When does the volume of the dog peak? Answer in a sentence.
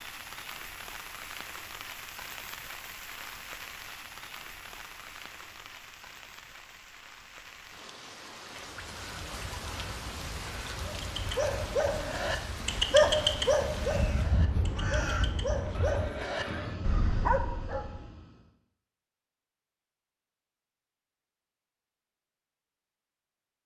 The loudest moment of the dog is at 13 seconds.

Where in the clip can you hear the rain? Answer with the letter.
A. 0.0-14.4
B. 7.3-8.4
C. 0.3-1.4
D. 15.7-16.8
A.